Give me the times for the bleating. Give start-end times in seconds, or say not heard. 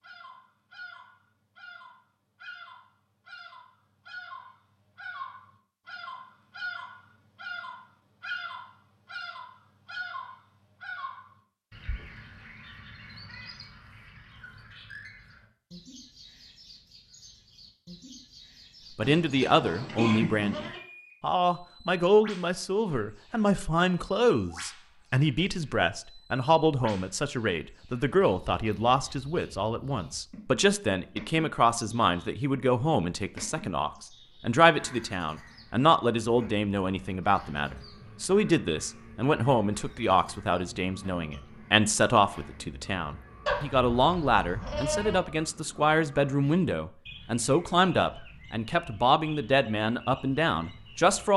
19.0-20.8, 43.5-45.2.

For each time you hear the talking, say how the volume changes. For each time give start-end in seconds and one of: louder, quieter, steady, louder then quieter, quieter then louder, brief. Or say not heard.
18.9-51.3 steady.